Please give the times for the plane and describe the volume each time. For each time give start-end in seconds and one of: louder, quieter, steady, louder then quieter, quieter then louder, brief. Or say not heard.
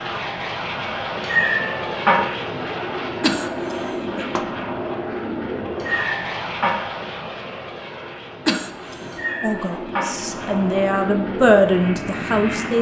0.0-12.7 quieter then louder.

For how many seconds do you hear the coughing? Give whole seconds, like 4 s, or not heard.
2 s.